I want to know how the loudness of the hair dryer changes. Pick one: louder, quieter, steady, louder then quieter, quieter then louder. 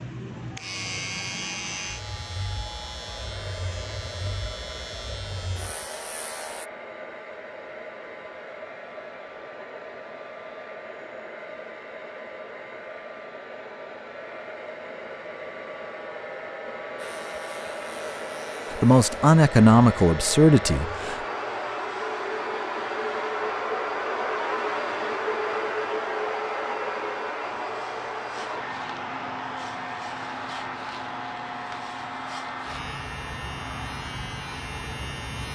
louder then quieter.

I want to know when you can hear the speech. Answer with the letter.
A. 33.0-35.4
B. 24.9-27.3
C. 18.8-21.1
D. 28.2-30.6
C.